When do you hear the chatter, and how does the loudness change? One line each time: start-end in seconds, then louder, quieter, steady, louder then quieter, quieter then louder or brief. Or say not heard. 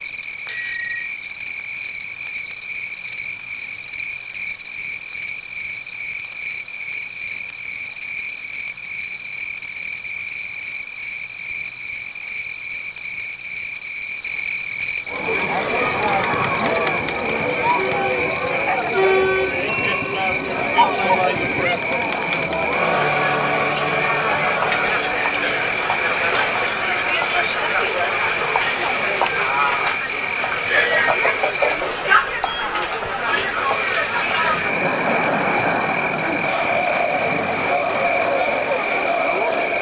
15.1-39.7 steady.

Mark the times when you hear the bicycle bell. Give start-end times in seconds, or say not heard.
0.5-1.1, 19.6-20.2, 30.7-32.6.